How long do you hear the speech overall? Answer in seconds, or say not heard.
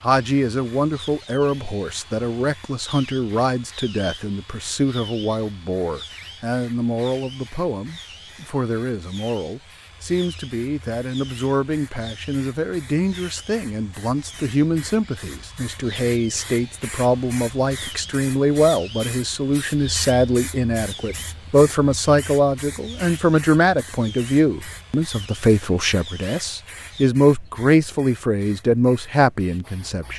30 s.